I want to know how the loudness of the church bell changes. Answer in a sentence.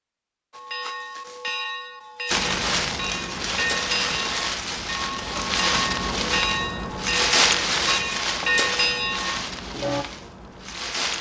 The volume of the church bell goes up.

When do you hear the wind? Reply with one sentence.
The wind can be heard from 2.3 to 11.1 s.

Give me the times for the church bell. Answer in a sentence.
The church bell can be heard from 0.5 to 10.1 s.